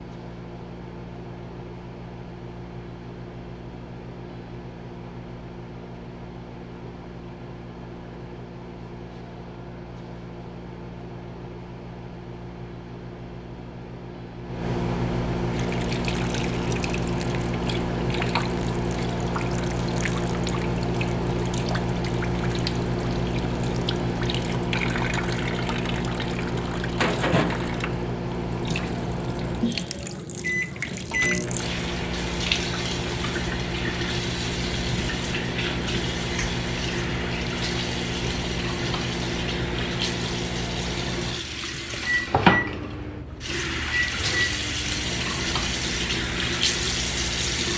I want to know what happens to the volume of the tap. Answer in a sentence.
The volume of the tap goes up.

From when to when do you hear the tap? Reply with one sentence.
You can hear the tap from 15.5 to 47.7 s.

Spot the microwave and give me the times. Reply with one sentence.
You can hear the microwave from 0.0 to 47.7 s.